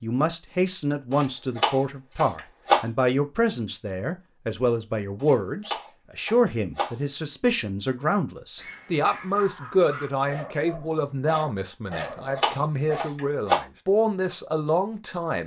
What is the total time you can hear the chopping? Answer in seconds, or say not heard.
5 s.